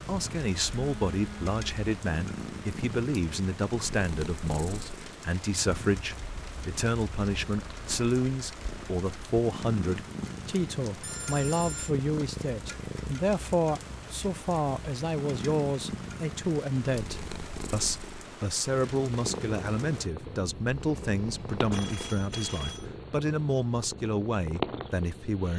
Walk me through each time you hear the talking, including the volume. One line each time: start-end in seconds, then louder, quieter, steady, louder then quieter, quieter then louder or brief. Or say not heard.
0.1-25.5 steady.